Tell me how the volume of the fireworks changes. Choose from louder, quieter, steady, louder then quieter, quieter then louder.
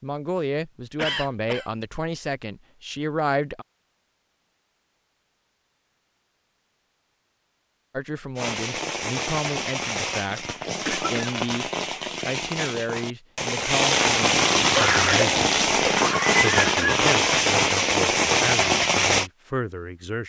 louder.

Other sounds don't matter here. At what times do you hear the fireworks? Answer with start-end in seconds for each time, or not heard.
8.3-19.3.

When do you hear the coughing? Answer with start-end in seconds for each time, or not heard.
0.9-1.7, 10.8-11.3, 14.7-17.1.